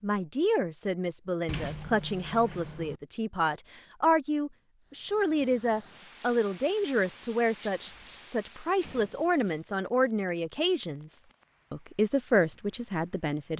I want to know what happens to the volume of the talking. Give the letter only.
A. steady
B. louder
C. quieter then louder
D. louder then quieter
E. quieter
A.